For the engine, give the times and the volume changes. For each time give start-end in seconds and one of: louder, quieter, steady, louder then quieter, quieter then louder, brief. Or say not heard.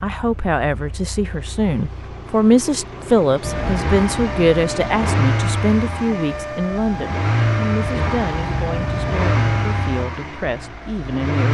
0.0-11.4 louder.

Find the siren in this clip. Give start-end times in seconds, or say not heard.
3.4-10.1.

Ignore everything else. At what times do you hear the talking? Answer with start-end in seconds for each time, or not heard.
0.0-11.4.